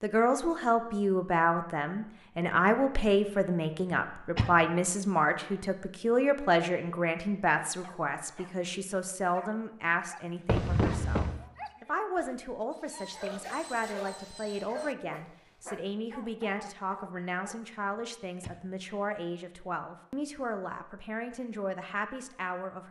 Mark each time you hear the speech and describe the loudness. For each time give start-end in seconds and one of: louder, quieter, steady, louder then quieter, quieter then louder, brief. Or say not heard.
0.0-22.8 quieter.